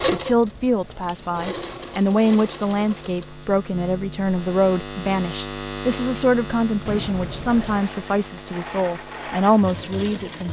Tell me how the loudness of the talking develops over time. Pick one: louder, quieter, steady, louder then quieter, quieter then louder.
steady.